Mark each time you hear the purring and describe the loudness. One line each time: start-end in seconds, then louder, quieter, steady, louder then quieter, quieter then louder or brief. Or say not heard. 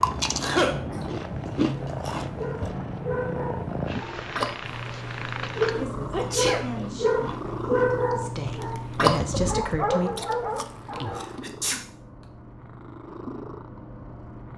0.0-14.5 quieter.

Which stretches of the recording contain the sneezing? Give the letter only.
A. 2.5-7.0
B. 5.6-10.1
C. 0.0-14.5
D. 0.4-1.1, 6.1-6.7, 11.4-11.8
D.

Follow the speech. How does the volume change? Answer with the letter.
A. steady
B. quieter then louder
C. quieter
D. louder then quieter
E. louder
B.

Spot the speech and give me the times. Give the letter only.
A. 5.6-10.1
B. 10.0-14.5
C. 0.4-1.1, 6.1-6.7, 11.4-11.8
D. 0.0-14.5
A.